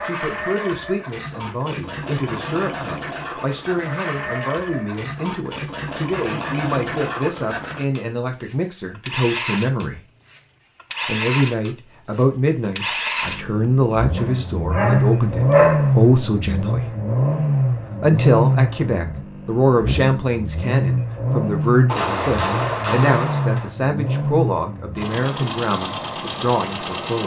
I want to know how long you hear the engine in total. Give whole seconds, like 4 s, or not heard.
27 s.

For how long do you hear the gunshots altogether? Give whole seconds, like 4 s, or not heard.
2 s.